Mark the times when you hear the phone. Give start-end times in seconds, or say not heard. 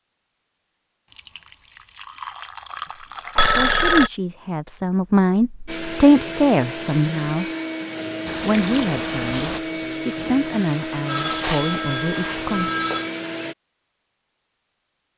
3.4-4.1, 11.1-13.1.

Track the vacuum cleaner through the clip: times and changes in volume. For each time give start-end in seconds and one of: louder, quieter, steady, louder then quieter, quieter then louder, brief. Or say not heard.
5.7-13.6 steady.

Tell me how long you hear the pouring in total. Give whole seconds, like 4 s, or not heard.
4 s.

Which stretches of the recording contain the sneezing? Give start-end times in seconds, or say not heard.
not heard.